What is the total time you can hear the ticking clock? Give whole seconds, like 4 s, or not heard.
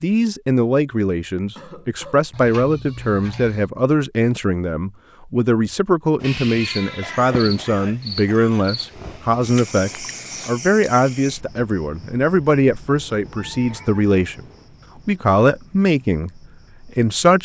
not heard.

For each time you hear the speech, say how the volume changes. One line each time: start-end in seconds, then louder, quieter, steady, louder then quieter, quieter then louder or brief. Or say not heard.
0.0-14.4 steady
15.1-17.4 brief.